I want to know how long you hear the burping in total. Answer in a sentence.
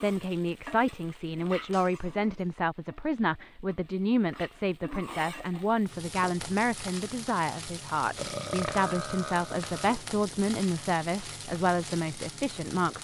You can hear the burping for 2 seconds altogether.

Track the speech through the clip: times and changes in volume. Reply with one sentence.
The speech can be heard from 0.0 to 12.9 s, at a steady volume.